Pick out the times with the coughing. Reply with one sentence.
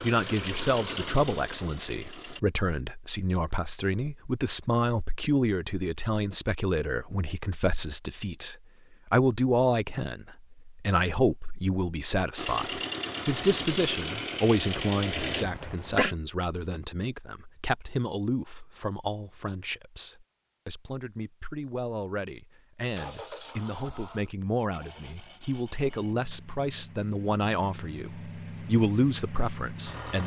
You can hear the coughing from 15.2 to 16.1 s.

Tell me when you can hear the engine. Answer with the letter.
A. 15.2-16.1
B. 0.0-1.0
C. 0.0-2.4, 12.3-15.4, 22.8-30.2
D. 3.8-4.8
C.